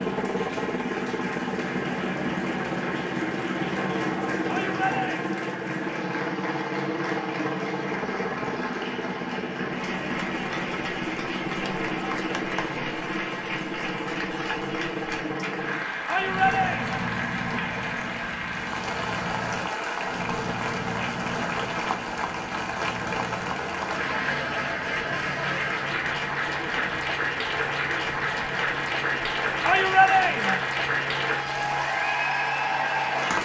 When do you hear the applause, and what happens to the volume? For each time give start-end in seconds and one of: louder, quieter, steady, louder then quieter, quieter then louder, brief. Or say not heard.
0.0-33.4 louder.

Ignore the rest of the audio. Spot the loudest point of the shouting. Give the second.
30 s.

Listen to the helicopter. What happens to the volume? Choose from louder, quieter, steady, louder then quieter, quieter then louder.
quieter.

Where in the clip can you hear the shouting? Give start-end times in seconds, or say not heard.
4.5-5.5, 16.1-17.1, 29.6-30.6.